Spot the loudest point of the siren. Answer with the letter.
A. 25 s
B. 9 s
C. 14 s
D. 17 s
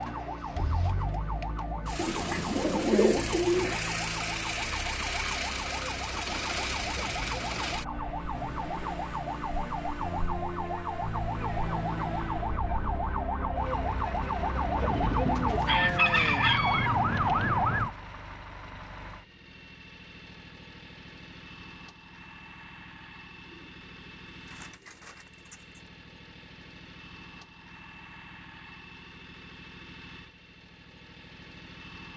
D.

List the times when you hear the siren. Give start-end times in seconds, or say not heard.
0.0-17.9.